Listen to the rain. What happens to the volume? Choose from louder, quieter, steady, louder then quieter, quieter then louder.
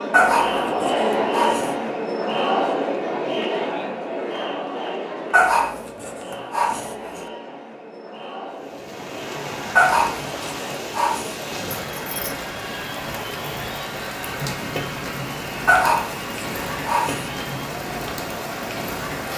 steady.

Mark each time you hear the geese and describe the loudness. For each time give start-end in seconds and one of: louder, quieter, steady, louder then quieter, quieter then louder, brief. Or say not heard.
not heard.